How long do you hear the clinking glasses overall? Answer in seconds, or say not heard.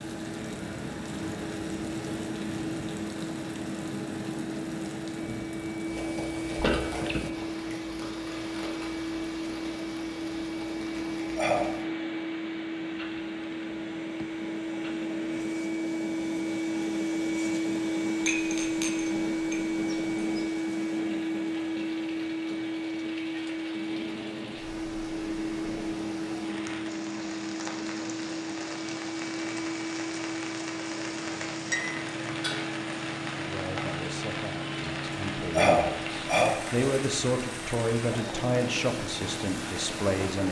4 s.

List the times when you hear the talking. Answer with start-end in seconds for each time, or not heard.
33.4-40.4.